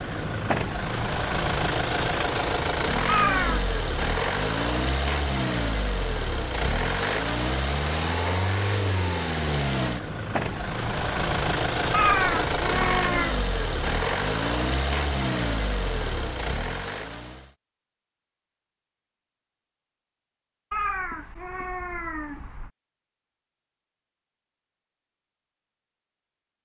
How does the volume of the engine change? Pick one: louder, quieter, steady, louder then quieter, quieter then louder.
steady.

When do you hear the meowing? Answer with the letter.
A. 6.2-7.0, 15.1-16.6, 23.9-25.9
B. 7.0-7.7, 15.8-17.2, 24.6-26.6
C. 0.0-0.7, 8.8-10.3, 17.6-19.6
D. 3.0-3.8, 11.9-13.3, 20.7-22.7
D.